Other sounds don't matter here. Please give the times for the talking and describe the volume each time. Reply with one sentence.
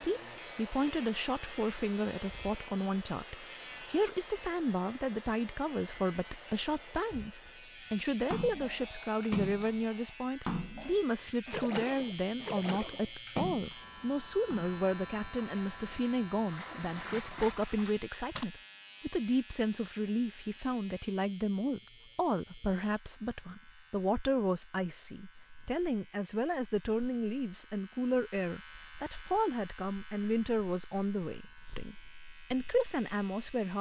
You can hear the talking from 0.0 to 33.7 s, at a steady volume.